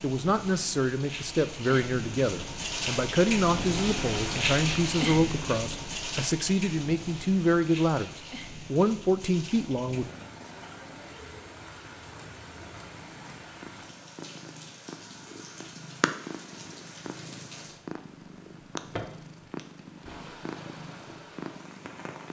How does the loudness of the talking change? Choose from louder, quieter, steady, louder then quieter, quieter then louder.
steady.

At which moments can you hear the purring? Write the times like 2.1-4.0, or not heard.
9.5-22.2.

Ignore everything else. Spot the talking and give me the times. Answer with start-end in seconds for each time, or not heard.
0.0-10.1.